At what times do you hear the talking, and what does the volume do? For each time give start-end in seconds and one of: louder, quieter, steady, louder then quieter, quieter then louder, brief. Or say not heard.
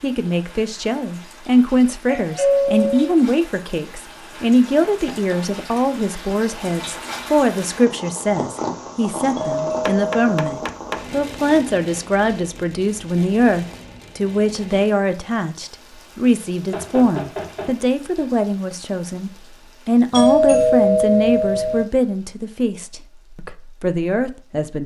0.0-24.8 steady.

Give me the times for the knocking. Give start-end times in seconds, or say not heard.
4.8-5.5, 9.8-11.0, 16.6-18.2.